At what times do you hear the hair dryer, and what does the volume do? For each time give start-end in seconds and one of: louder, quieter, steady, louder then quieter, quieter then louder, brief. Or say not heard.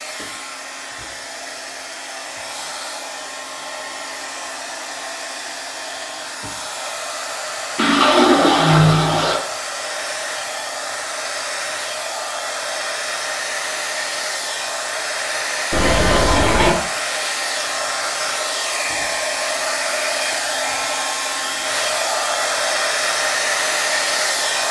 0.0-24.6 louder.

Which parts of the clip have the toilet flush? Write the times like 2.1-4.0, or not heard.
7.8-9.4, 15.7-16.8.